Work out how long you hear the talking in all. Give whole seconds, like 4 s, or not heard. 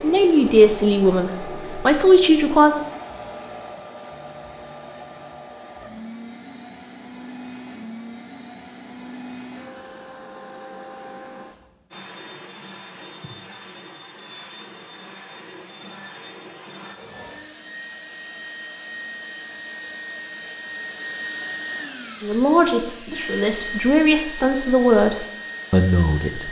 7 s.